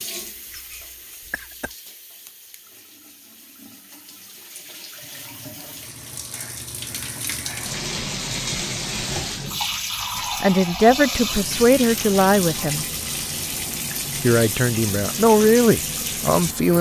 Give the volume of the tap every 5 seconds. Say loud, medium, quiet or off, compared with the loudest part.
quiet, loud, loud, loud.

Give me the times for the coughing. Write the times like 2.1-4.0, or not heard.
0.3-1.8.